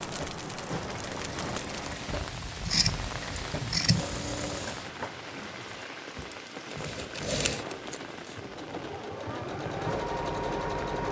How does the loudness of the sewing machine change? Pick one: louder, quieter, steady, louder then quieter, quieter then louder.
louder.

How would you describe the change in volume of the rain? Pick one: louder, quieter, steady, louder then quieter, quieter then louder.
quieter.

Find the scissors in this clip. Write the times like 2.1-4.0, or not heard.
2.1-4.0, 7.2-8.0.